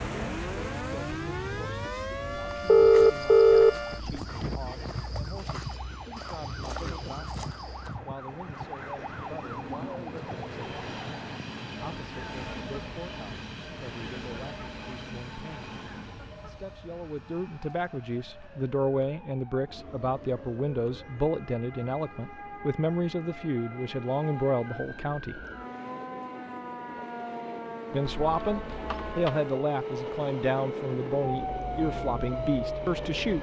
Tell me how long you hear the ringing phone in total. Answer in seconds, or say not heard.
2 s.